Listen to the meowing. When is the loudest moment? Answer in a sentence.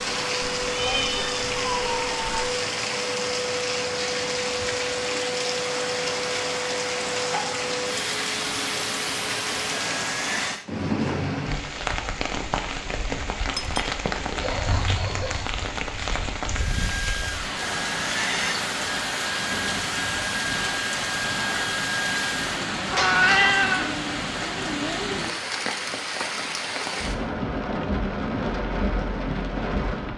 The loudest moment of the meowing is at 23 seconds.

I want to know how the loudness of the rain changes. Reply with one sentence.
The loudness of the rain stays about the same.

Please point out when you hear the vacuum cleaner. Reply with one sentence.
The vacuum cleaner can be heard from 0.0 to 10.7 s and from 16.5 to 22.6 s.